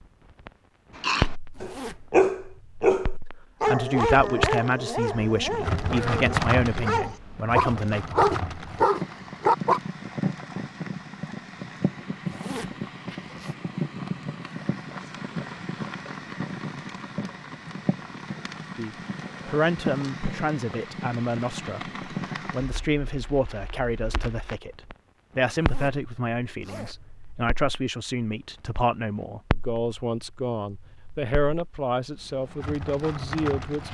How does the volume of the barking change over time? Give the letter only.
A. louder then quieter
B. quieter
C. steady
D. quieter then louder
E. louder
D.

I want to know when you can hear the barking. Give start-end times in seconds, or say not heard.
0.9-9.8.